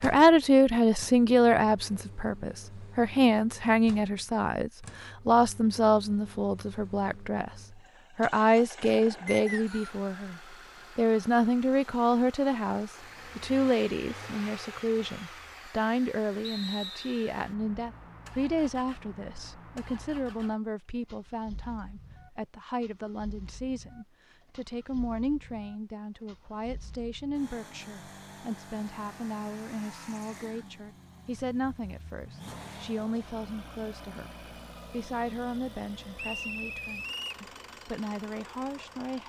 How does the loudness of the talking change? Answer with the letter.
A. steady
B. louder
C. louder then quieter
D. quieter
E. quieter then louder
D.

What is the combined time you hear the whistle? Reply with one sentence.
You can hear the whistle for 3 seconds altogether.